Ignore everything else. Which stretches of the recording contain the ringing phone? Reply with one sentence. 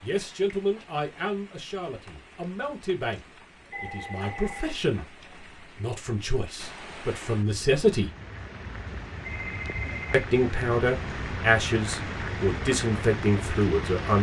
The ringing phone can be heard from 3.7 to 4.8 s and from 9.2 to 10.2 s.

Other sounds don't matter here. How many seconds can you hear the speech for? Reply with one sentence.
You can hear the speech for 12 seconds altogether.